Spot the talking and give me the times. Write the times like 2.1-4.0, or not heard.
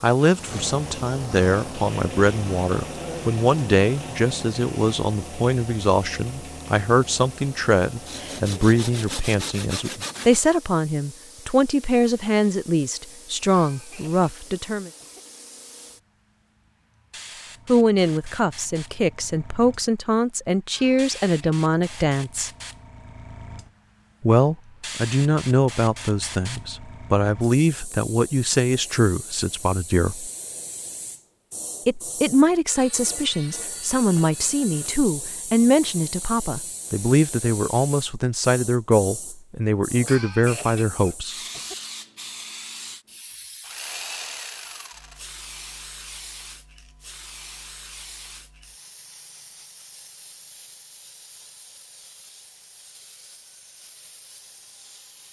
0.0-14.9, 17.6-22.5, 24.2-30.3, 31.9-41.4.